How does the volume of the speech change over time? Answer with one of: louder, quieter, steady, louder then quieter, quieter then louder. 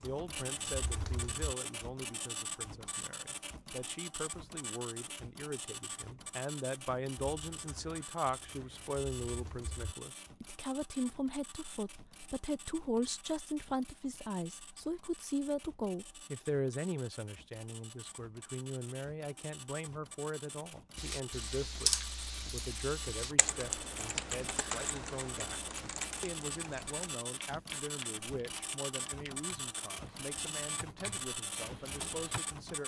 louder then quieter.